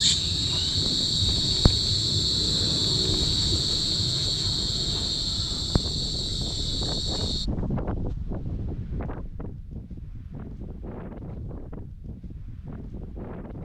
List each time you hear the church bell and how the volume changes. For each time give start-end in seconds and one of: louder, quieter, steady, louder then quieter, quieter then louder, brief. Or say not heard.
not heard.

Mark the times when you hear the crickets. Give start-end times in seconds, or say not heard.
0.0-7.5.